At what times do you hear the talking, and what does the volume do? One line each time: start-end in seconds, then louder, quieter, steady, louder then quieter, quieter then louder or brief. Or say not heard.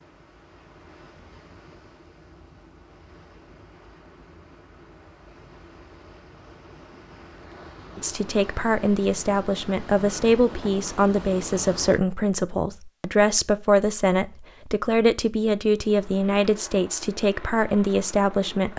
8.0-18.7 steady.